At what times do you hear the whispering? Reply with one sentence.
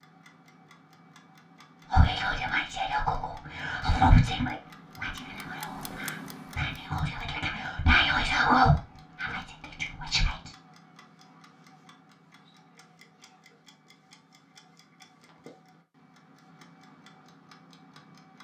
The whispering can be heard from 1.9 to 10.6 s.